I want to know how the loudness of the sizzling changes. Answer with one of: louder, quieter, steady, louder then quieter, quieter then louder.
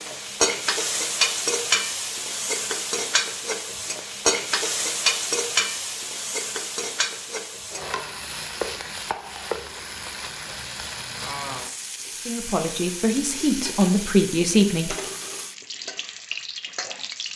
quieter.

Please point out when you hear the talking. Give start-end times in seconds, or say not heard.
12.2-14.9.